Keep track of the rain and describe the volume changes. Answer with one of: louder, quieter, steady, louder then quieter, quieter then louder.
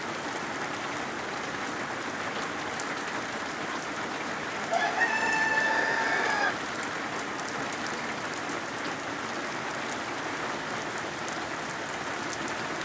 steady.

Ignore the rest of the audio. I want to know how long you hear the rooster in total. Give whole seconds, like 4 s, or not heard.
2 s.